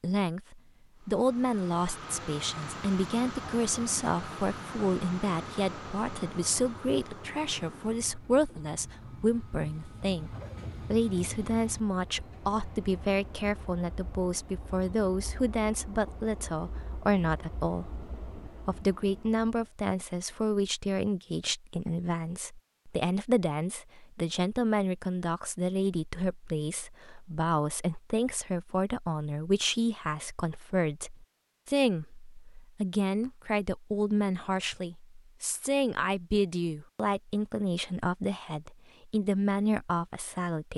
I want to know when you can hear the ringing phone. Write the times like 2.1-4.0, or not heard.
not heard.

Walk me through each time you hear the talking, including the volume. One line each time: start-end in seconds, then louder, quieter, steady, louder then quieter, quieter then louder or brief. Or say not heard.
0.0-40.7 steady.